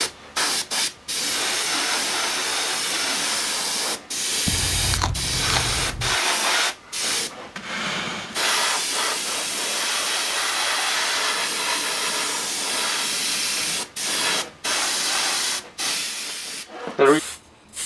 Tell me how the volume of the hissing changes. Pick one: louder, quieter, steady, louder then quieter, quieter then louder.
steady.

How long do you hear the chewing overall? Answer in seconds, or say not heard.
2 s.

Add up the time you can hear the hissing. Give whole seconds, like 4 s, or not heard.
18 s.